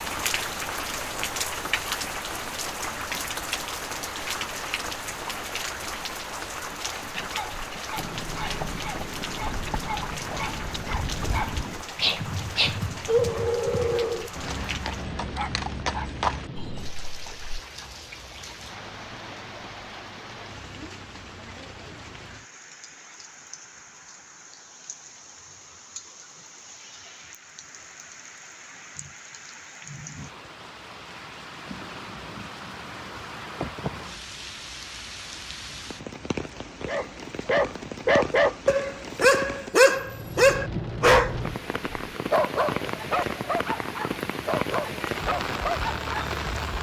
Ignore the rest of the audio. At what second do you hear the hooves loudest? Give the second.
16 s.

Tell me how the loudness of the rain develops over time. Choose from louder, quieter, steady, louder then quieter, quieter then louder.
quieter then louder.